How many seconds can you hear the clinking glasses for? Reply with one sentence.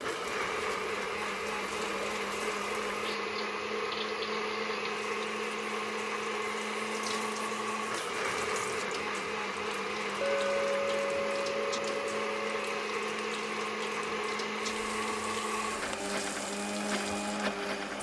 The clinking glasses can be heard for 3 seconds in total.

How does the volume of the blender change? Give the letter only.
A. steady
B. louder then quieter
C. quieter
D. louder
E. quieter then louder
A.